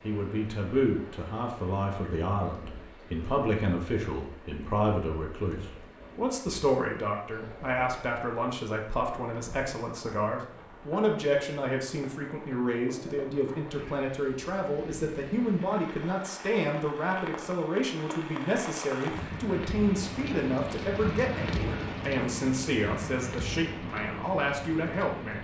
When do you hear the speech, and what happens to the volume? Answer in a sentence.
The speech can be heard from 0.0 to 25.3 s, at a steady volume.